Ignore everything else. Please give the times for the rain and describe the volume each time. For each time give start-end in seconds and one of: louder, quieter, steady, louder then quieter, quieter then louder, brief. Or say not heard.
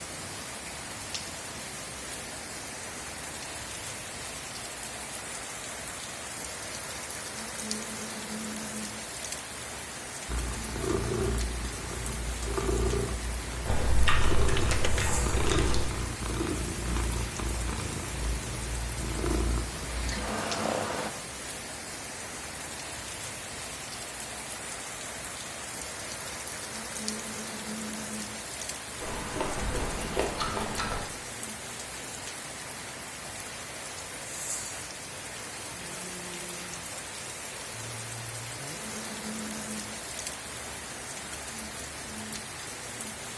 0.0-43.3 steady.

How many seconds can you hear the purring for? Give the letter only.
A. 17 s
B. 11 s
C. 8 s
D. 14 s
B.